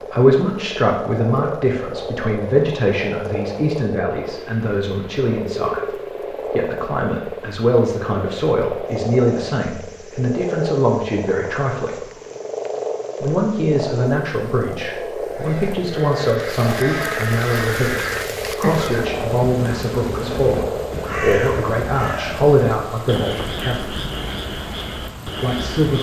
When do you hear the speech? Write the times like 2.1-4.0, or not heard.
0.0-12.1, 13.2-24.0, 25.4-25.9.